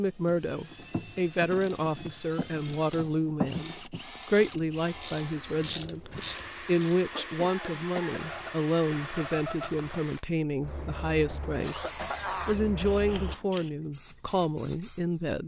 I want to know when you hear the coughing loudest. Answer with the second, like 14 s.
12 s.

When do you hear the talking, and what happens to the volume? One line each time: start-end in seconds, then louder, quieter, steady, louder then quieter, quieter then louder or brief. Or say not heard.
0.0-15.4 steady.